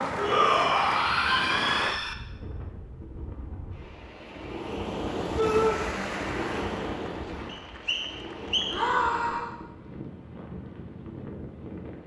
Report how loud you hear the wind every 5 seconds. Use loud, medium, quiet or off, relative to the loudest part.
medium, loud, medium.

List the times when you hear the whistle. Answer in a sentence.
You can hear the whistle from 7.5 to 8.9 s.